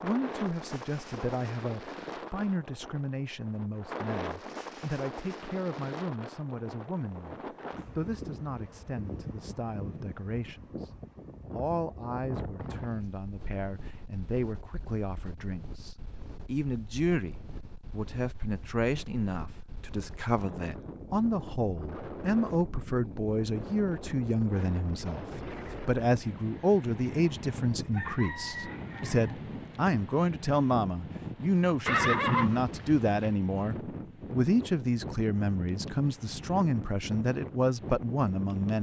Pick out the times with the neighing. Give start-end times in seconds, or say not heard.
31.9-33.4.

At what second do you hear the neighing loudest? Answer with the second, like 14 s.
32 s.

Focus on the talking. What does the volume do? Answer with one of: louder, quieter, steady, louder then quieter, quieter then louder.
louder.